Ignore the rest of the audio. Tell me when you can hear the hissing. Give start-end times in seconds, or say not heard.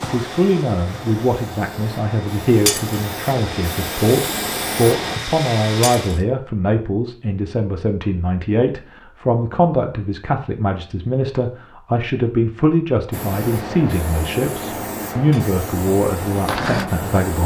0.1-5.2, 13.1-17.4.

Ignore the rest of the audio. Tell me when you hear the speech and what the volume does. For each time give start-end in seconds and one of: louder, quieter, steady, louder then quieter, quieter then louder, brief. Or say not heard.
0.0-17.4 steady.